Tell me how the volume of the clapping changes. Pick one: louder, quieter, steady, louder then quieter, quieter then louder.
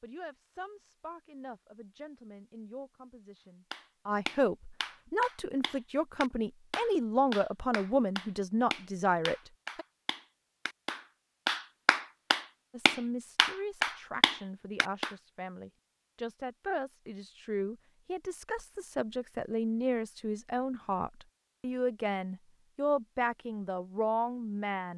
louder.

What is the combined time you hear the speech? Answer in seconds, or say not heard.
22 s.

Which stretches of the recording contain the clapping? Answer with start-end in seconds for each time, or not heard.
3.7-15.1.